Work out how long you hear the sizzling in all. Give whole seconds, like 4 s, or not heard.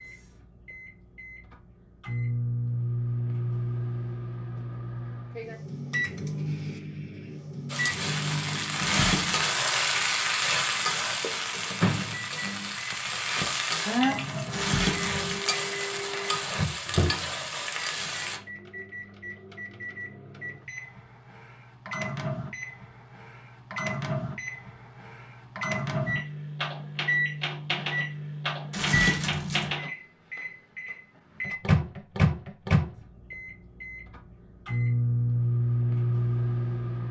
11 s.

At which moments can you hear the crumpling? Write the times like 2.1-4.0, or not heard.
8.8-9.4, 14.5-15.4, 28.7-29.8.